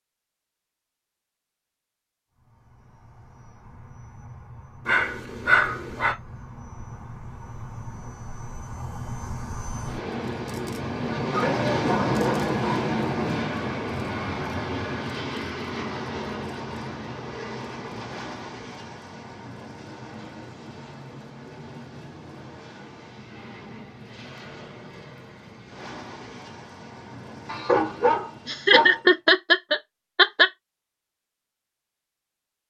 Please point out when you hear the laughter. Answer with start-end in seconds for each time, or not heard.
28.4-30.5.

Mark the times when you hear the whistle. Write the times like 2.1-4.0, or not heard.
not heard.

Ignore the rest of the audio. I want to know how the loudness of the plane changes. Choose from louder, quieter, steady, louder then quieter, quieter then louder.
louder then quieter.